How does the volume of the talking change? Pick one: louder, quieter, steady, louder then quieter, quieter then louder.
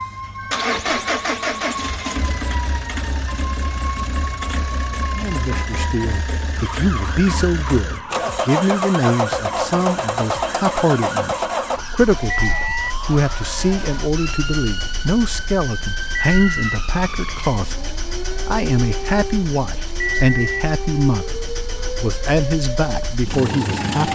steady.